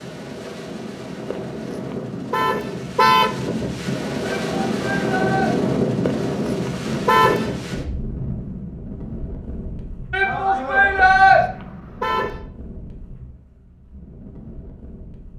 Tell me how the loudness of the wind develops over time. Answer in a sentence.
The volume of the wind goes up, then down.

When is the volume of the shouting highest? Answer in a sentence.
The volume of the shouting peaks at 11 seconds.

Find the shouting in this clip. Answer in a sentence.
The shouting can be heard from 4.2 to 5.5 s and from 10.1 to 11.4 s.